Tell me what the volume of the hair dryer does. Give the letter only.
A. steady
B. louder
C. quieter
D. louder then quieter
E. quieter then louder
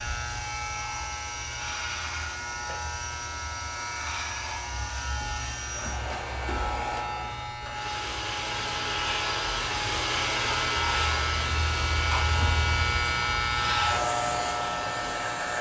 D.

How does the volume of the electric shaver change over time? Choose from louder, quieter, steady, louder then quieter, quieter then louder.
louder.